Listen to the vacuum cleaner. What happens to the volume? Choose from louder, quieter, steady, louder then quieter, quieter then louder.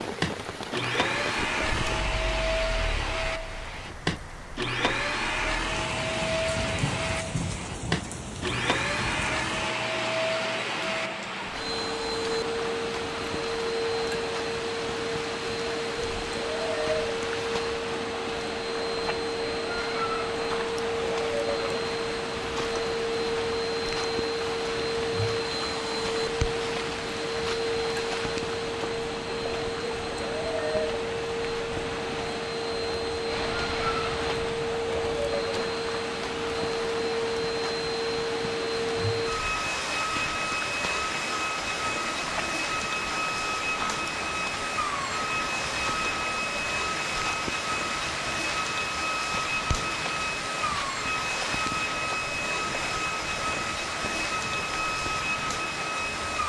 steady.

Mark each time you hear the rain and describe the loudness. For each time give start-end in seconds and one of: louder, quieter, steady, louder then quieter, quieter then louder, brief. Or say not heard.
0.0-56.4 steady.